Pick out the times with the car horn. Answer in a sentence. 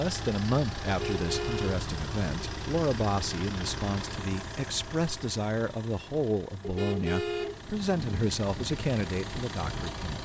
The car horn can be heard from 0.8 to 1.8 s and from 6.6 to 8.3 s.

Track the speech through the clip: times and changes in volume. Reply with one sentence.
You can hear the speech from 0.0 to 10.2 s, at a steady volume.